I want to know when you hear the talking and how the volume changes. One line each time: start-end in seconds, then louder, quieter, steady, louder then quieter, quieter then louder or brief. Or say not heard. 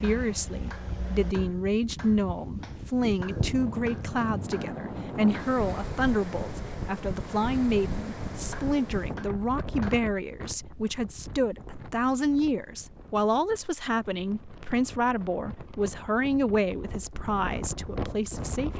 0.0-18.7 steady.